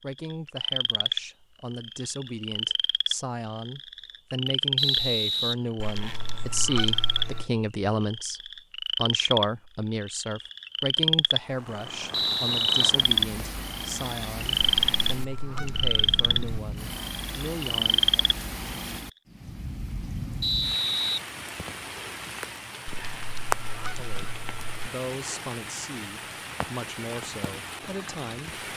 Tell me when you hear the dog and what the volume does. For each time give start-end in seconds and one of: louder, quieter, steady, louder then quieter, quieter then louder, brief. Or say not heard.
not heard.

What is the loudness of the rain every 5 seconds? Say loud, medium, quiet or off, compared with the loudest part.
off, off, loud, loud, loud, loud.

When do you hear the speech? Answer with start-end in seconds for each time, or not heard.
0.0-18.2, 23.8-28.6.